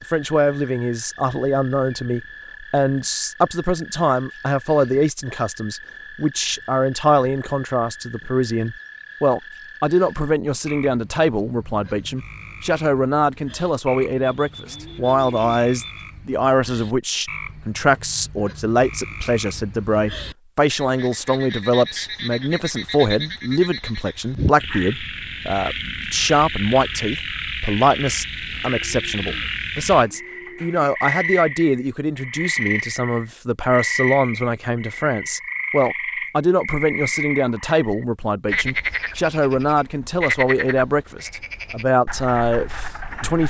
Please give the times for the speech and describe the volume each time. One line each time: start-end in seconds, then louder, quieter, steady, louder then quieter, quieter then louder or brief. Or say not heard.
0.1-43.4 steady.